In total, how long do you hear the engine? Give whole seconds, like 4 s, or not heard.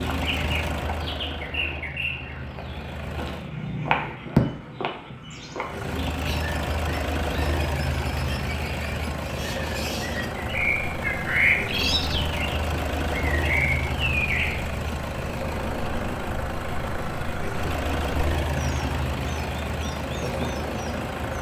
19 s.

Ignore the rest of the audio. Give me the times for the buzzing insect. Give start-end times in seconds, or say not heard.
not heard.